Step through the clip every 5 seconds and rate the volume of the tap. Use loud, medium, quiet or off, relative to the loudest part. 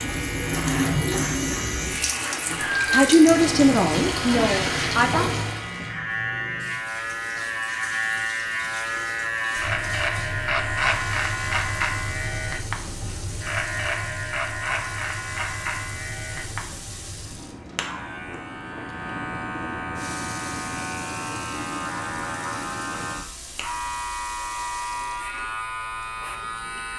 loud, medium, quiet, quiet, quiet, quiet.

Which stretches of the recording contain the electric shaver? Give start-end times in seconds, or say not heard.
0.0-26.9.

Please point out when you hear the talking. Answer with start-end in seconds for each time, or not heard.
2.5-5.4.